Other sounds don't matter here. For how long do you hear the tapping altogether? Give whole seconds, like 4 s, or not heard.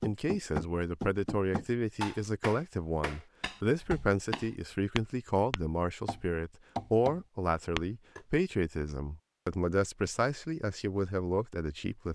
8 s.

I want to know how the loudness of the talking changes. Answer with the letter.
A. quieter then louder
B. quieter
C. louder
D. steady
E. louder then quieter
D.